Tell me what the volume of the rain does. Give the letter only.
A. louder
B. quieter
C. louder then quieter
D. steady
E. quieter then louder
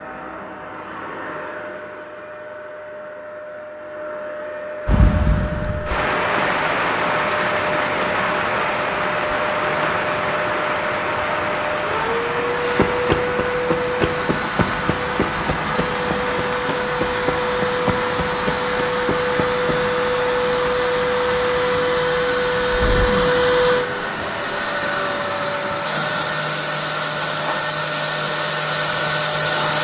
B.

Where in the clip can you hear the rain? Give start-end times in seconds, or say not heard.
4.8-29.7.